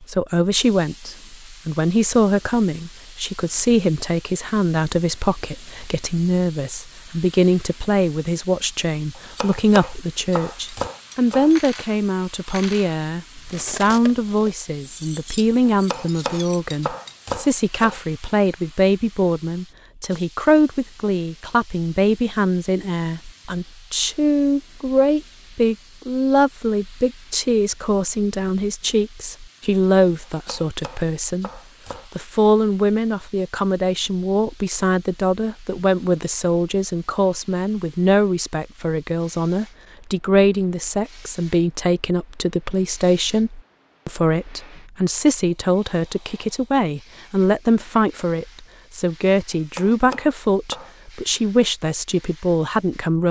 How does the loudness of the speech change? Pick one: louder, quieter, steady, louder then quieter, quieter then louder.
steady.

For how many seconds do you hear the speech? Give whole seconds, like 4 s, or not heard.
53 s.